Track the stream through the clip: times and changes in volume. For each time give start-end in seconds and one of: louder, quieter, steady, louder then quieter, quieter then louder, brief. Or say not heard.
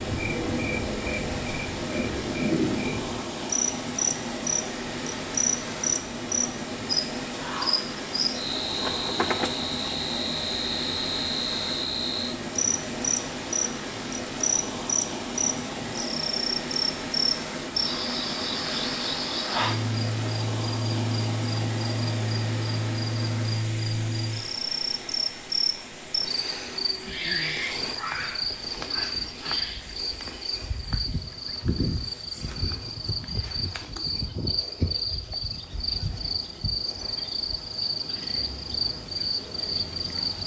0.0-40.4 quieter.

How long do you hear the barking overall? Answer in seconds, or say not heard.
not heard.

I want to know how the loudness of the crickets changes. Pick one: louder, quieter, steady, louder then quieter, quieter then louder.
steady.